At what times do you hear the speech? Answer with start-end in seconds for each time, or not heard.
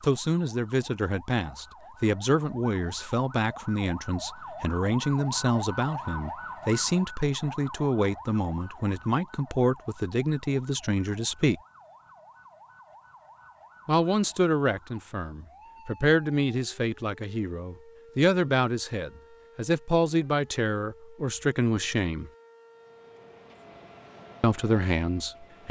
0.0-11.6, 13.8-22.3, 24.4-25.6.